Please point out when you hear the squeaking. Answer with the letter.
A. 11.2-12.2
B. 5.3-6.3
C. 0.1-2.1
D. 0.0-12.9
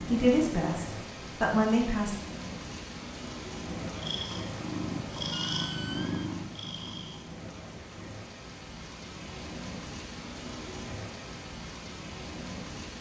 B.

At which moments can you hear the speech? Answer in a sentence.
You can hear the speech from 0.1 to 2.1 s.